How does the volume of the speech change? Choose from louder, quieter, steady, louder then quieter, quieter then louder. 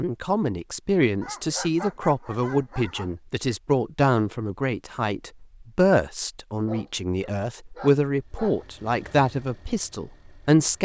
steady.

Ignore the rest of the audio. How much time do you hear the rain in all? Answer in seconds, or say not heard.
not heard.